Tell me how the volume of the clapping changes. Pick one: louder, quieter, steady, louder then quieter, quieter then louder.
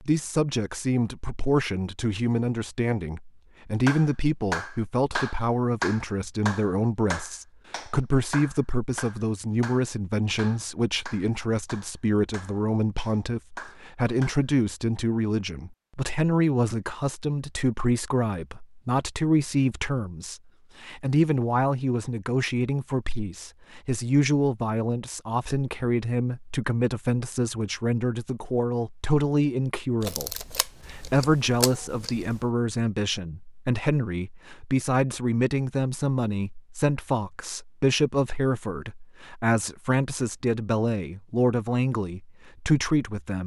quieter.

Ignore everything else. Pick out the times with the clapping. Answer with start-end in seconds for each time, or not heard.
3.9-14.4.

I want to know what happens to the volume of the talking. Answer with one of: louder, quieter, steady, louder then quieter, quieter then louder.
steady.